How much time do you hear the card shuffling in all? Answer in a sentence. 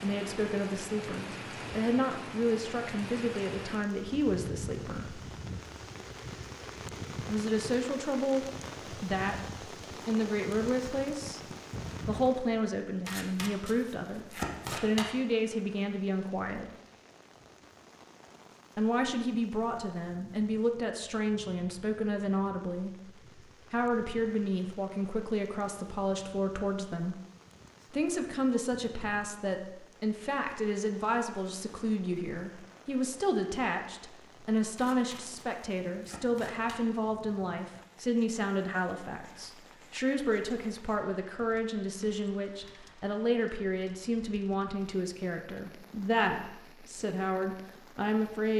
You can hear the card shuffling for 4 seconds altogether.